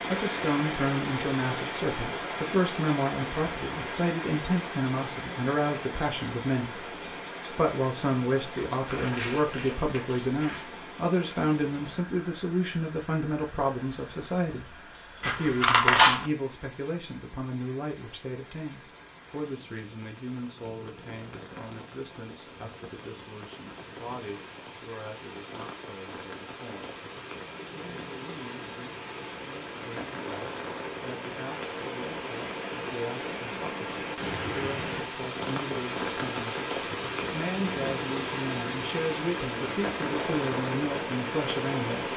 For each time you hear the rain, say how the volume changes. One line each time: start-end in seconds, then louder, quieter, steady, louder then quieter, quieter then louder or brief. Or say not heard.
0.0-42.1 quieter then louder.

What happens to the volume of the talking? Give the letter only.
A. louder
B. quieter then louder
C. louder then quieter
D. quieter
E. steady
B.